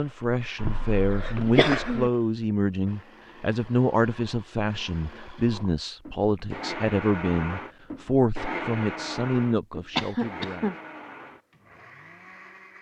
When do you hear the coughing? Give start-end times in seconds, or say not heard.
0.6-2.1, 9.9-10.8.